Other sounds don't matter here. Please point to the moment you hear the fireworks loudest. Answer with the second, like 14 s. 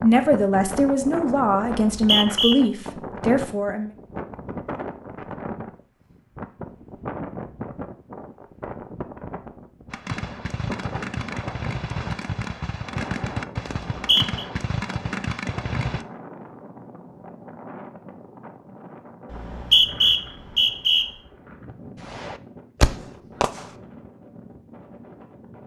23 s.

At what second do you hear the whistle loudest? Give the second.
20 s.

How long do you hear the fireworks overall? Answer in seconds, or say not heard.
8 s.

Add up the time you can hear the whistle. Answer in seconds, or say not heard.
3 s.